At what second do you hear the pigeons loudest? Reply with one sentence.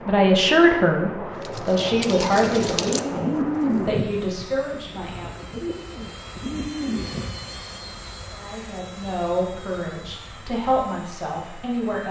The loudest moment of the pigeons is at 4 seconds.